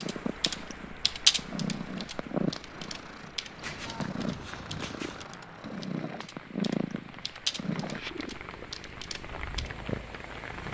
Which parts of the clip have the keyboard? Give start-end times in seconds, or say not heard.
0.0-9.7.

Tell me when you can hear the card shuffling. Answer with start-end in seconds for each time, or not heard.
3.6-5.2.